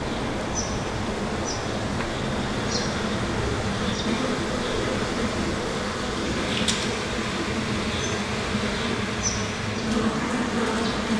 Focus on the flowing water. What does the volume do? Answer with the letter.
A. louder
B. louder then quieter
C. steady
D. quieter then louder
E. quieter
C.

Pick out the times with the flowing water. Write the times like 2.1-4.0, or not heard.
0.0-11.1.